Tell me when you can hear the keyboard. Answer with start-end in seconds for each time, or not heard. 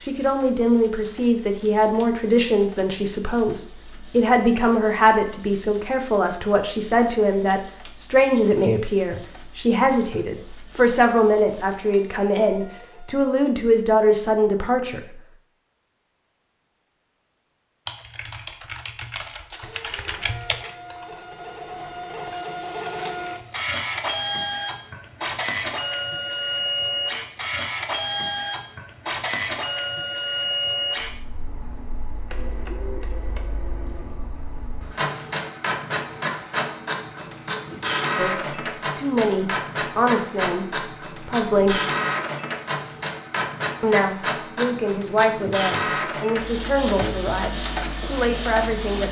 17.9-23.5.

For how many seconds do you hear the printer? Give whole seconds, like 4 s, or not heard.
43 s.